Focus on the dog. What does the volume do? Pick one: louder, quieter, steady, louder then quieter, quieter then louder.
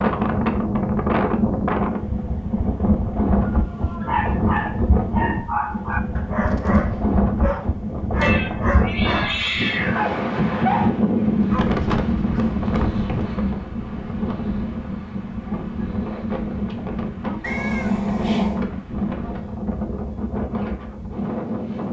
steady.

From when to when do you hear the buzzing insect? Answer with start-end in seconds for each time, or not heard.
not heard.